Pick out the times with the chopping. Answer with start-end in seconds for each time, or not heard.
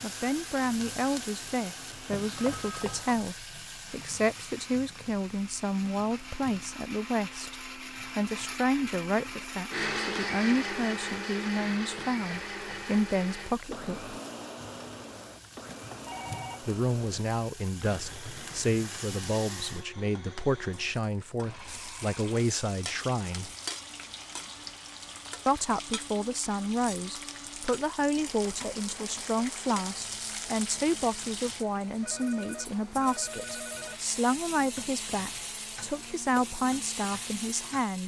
not heard.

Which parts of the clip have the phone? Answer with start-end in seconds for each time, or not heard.
2.5-3.0, 15.9-16.6, 32.0-34.0.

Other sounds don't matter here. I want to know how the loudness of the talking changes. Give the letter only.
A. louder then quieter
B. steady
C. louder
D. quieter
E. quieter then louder
B.